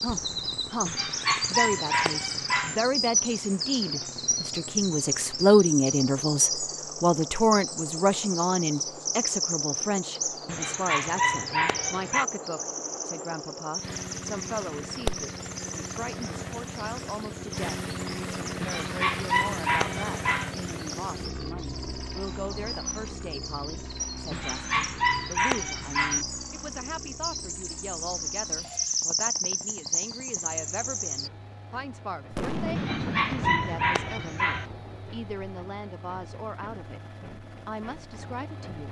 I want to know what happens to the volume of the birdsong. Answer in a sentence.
The volume of the birdsong goes down, then up.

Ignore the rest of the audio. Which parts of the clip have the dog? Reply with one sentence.
You can hear the dog from 0.8 to 2.8 s, from 10.4 to 12.2 s, from 18.6 to 20.6 s, from 24.3 to 26.2 s and from 32.8 to 34.6 s.